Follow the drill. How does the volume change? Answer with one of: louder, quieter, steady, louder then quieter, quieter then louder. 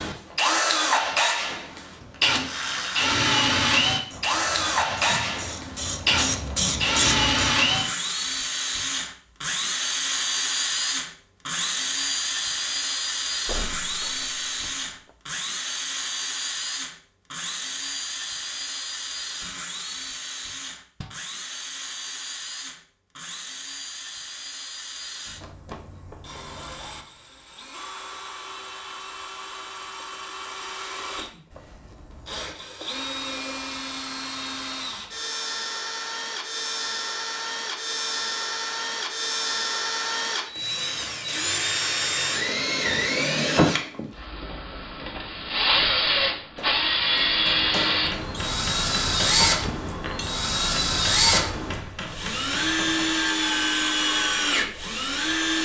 quieter then louder.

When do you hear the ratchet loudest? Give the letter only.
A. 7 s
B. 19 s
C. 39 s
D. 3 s
A.